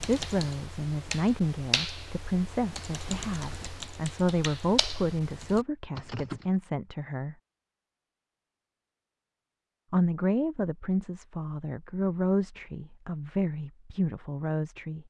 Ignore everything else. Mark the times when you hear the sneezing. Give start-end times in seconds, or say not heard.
not heard.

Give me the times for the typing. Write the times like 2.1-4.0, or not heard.
0.0-6.5.